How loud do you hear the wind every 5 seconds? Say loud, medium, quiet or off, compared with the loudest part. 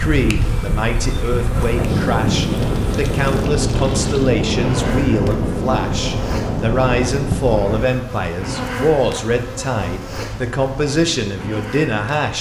loud, loud, off.